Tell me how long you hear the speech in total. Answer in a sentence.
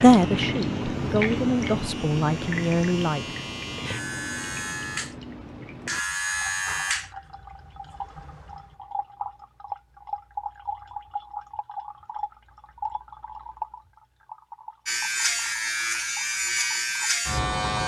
The speech can be heard for 3 seconds in total.